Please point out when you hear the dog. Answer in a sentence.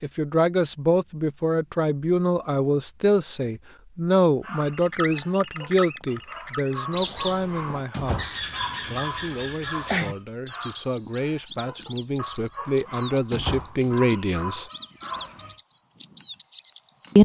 The dog can be heard from 4.4 to 15.6 s.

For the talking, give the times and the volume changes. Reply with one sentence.
You can hear the talking from 0.0 to 14.7 s, getting quieter then louder.